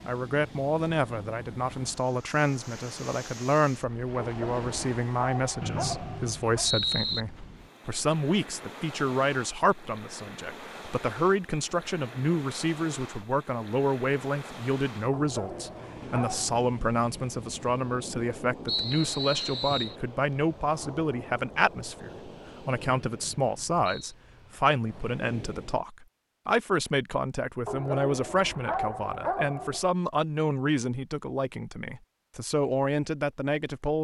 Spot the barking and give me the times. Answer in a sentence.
The barking can be heard from 4.2 to 6.7 s, from 15.1 to 16.6 s and from 27.6 to 29.9 s.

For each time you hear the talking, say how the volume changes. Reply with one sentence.
You can hear the talking from 0.0 to 34.0 s, at a steady volume.